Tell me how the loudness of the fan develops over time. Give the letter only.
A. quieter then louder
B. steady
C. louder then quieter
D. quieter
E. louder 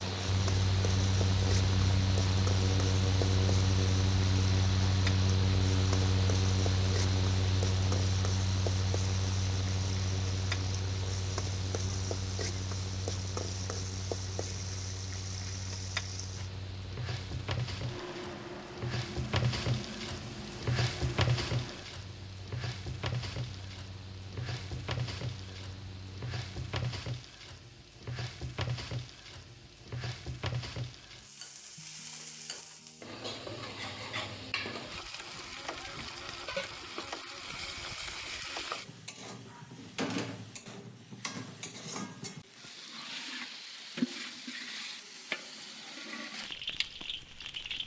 D.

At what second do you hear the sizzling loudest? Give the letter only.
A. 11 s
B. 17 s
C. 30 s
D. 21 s
D.